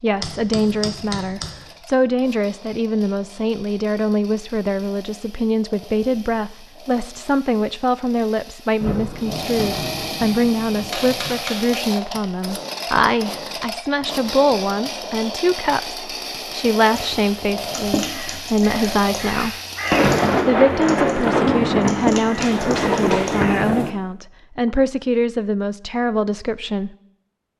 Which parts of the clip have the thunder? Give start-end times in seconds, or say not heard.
8.8-11.4, 19.9-23.9.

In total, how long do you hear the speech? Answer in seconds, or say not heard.
26 s.